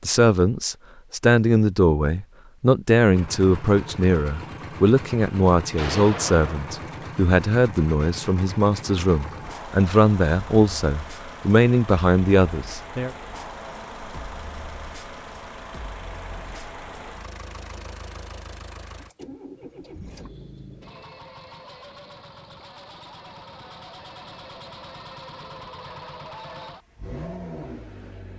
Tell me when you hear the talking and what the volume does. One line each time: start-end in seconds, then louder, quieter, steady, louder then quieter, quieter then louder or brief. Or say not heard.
0.0-13.1 steady.